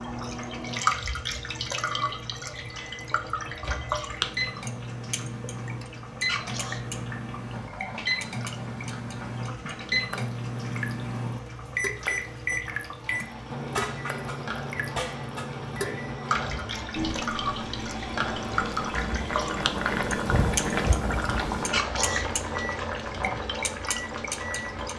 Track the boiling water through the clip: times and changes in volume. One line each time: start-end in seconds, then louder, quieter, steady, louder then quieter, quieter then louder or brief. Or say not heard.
0.0-24.9 louder.